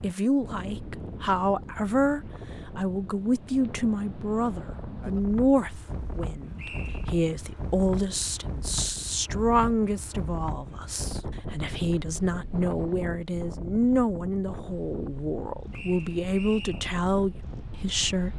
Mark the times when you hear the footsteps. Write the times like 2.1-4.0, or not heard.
not heard.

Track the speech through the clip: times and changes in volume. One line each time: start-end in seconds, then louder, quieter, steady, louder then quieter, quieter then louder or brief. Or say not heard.
0.0-18.3 steady.